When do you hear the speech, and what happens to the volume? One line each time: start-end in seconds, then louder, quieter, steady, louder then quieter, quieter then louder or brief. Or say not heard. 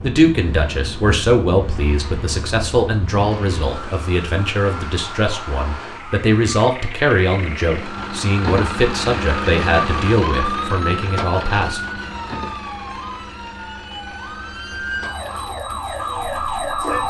0.0-11.8 steady.